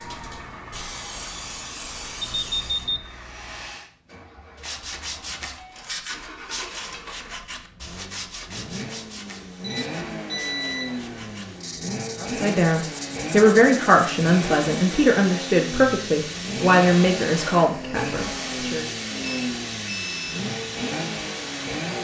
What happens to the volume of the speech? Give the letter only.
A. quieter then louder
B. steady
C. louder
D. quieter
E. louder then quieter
D.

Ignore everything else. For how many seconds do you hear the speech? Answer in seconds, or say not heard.
7 s.